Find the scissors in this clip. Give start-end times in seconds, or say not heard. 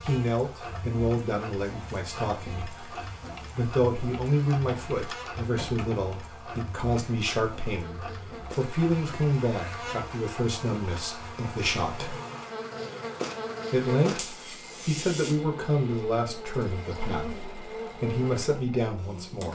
not heard.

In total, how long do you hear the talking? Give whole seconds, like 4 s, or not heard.
17 s.